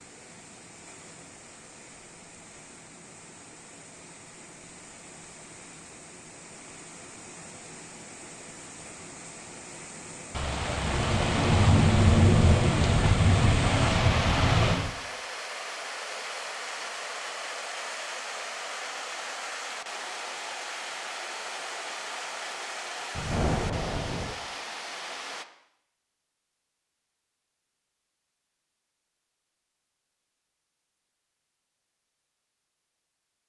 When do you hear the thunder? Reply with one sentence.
You can hear the thunder from 10.3 to 14.9 s and from 23.1 to 24.4 s.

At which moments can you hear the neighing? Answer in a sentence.
The neighing can't be heard in this clip.